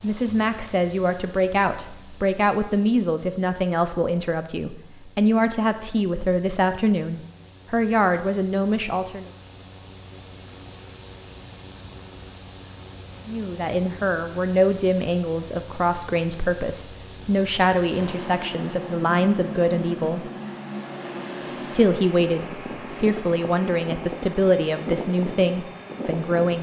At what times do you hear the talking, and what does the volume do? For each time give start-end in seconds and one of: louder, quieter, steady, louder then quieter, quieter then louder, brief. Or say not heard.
0.0-9.3 steady
13.2-20.3 steady
21.7-26.5 steady.